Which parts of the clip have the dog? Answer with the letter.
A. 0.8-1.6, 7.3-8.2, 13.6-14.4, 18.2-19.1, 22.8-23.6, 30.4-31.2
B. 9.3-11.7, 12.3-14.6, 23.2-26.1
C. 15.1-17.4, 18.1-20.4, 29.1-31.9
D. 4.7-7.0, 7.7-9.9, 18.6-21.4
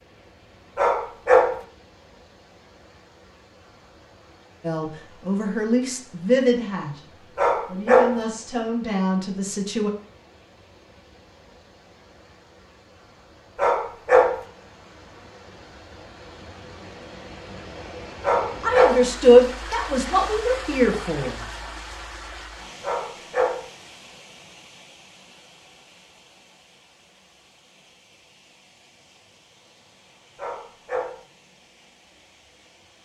A.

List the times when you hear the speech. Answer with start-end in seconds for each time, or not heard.
4.7-7.0, 7.7-9.9, 18.6-21.4.